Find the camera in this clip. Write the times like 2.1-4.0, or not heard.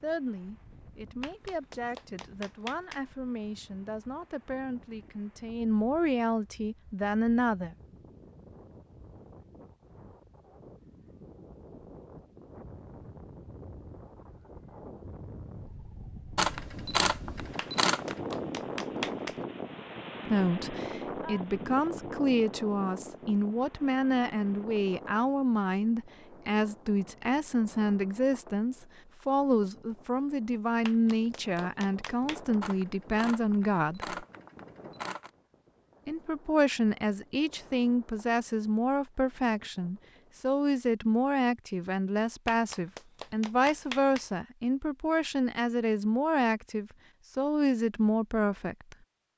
16.4-18.1, 32.6-35.3.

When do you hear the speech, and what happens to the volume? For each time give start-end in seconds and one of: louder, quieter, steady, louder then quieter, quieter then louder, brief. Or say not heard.
0.0-7.8 louder
20.2-34.2 steady
36.0-49.0 steady.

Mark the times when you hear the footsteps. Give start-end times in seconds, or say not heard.
not heard.